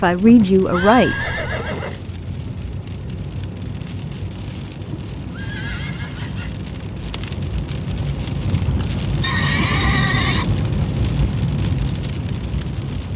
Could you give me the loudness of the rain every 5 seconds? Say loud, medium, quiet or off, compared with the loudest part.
medium, loud, loud.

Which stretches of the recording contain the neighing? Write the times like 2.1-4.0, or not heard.
0.7-2.0, 5.2-6.5, 9.2-10.4.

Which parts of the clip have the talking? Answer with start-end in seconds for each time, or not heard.
0.0-1.3.